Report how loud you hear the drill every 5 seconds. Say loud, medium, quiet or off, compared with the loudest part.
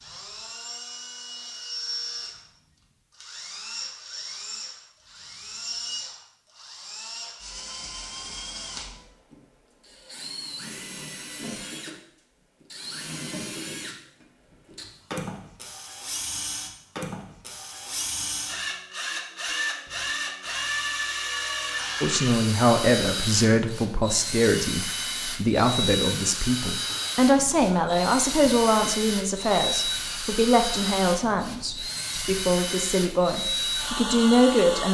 medium, medium, medium, loud, loud, loud, loud.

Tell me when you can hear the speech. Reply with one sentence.
You can hear the speech from 22.0 to 34.8 s.